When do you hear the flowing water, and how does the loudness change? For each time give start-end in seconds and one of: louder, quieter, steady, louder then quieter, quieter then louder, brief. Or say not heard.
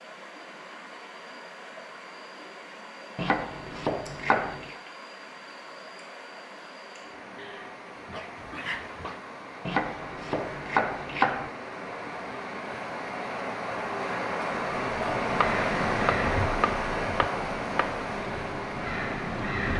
0.0-19.7 louder.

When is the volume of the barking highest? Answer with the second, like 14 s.
9 s.